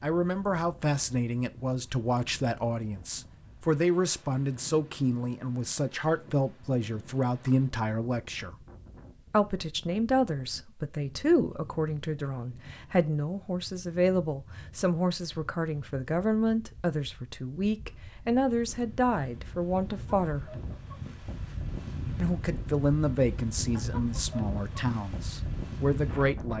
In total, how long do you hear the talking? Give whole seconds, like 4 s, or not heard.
24 s.